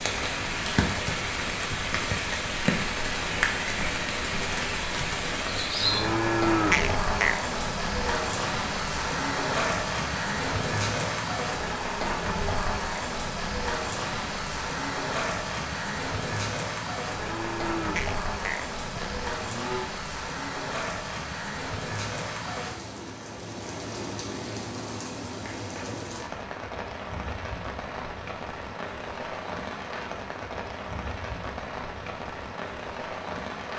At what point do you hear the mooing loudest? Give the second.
7 s.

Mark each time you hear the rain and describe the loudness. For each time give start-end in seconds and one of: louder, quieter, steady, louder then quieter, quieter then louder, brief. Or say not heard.
0.0-33.7 quieter.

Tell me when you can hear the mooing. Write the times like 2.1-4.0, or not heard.
5.8-7.4, 17.1-19.9.